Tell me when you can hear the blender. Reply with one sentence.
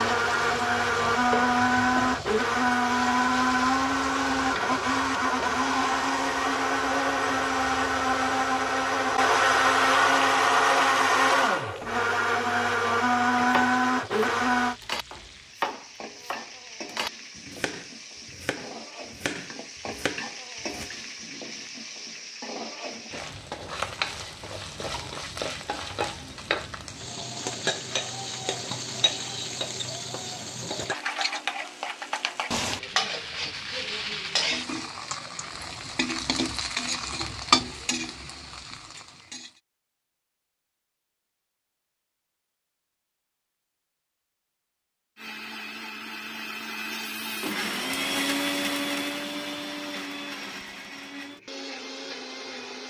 The blender can be heard from 0.0 to 14.8 s and from 45.1 to 52.8 s.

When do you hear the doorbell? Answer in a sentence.
You can't hear the doorbell here.